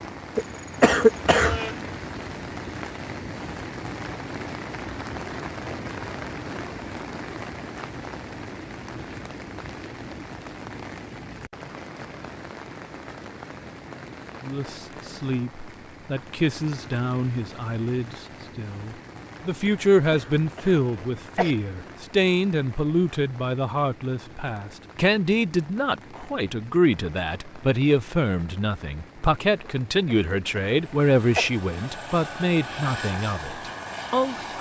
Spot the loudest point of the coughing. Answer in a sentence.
The loudest moment of the coughing is at 1 second.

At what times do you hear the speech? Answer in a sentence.
You can hear the speech from 14.4 to 34.5 s.